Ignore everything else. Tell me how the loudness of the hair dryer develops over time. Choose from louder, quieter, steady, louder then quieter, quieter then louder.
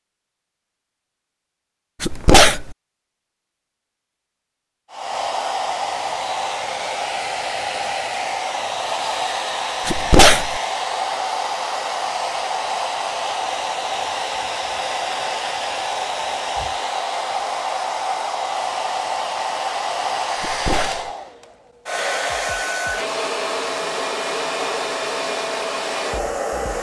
steady.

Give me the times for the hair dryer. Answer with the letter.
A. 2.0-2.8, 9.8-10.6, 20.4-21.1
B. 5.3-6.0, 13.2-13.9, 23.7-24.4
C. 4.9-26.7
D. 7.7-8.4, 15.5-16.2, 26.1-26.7
C.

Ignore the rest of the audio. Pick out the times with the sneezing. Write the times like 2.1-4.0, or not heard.
2.0-2.8, 9.8-10.6, 20.4-21.1.